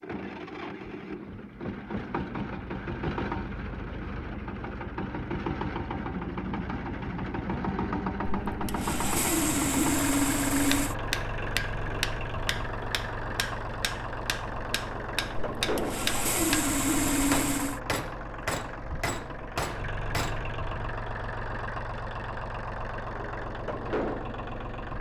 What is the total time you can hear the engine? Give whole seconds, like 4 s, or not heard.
25 s.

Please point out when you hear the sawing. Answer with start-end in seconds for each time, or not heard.
8.5-10.9, 15.6-17.8.